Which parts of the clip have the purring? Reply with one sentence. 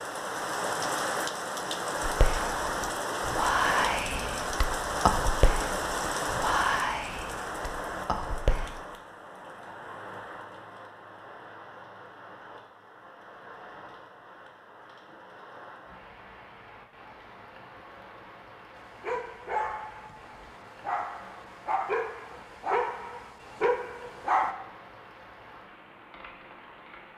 You can't hear the purring here.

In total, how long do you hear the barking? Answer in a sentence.
You can hear the barking for 6 seconds altogether.